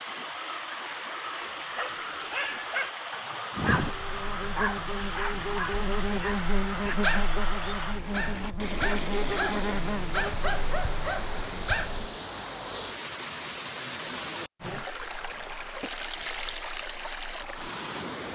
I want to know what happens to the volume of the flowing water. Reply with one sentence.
The volume of the flowing water stays about the same.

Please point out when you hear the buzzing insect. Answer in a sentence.
The buzzing insect can be heard from 3.5 to 12.0 s.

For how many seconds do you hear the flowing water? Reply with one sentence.
The flowing water can be heard for 18 seconds in total.